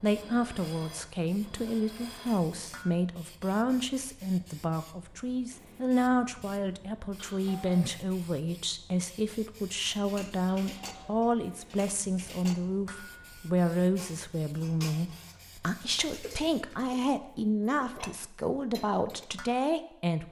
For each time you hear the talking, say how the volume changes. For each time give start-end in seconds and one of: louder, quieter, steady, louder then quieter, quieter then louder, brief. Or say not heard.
0.0-20.2 steady.